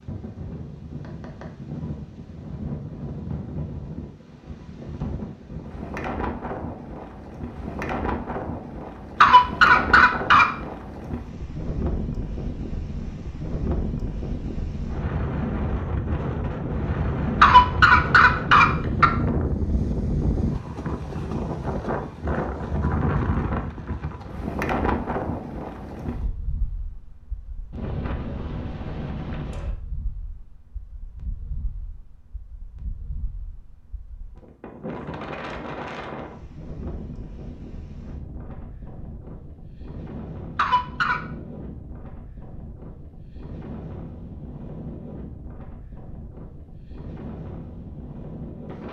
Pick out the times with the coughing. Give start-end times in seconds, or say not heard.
9.2-10.5, 17.4-19.1, 40.5-41.2.